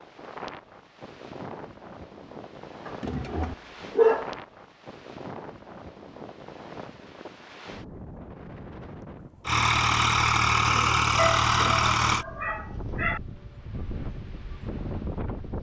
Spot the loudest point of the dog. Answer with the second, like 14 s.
4 s.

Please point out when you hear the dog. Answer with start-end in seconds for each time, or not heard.
2.9-4.3, 11.2-13.2.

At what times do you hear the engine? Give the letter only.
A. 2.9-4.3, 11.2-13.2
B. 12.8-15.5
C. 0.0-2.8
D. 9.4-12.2
D.